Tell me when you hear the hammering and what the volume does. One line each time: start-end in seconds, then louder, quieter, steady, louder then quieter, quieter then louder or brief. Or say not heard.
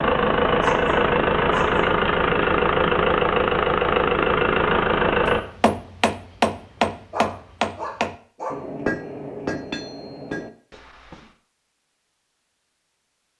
5.2-11.3 quieter.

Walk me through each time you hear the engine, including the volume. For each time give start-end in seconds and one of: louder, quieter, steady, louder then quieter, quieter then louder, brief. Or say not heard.
0.0-5.4 steady.